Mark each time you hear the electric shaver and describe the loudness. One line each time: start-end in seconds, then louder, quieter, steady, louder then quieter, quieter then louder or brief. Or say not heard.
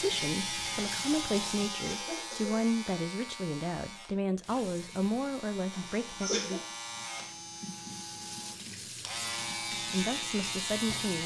0.0-11.2 quieter then louder.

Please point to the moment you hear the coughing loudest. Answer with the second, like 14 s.
6 s.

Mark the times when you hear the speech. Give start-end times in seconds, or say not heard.
0.0-6.7, 9.9-11.2.